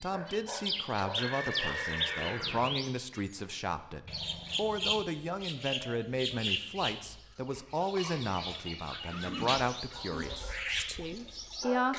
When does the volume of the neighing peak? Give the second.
2 s.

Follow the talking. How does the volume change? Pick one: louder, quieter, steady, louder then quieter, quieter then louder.
steady.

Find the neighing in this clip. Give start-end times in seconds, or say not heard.
1.1-2.8, 9.1-10.2.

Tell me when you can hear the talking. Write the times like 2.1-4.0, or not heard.
0.0-11.9.